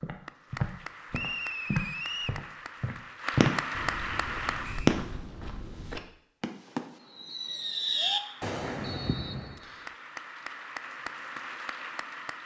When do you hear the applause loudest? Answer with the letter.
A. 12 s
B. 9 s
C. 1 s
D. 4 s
D.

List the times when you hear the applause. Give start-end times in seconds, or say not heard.
0.0-4.8, 8.1-12.4.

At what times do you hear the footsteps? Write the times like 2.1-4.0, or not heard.
0.0-6.0.